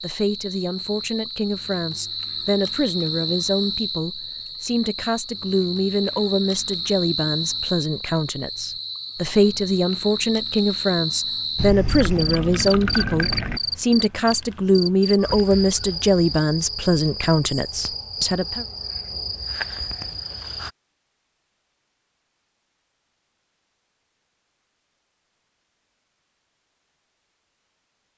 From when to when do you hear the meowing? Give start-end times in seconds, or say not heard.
not heard.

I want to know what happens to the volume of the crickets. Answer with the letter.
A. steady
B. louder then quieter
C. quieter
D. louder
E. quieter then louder
A.